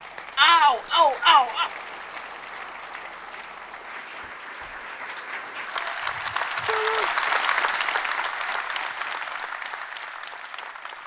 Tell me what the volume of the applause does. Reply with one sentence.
The loudness of the applause goes up, then down.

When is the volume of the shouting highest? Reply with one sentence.
The volume of the shouting peaks at 1 second.